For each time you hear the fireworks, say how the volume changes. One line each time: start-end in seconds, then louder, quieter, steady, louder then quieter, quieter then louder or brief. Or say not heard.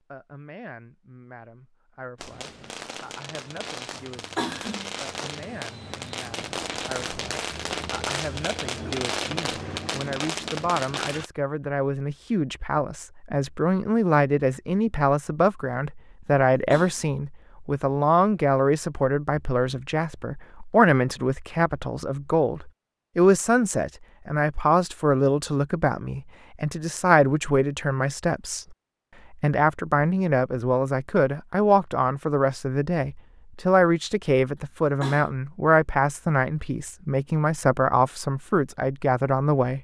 2.1-11.3 louder.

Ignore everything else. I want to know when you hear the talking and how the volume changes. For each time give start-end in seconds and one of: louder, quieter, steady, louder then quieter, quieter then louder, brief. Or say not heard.
0.1-39.7 louder.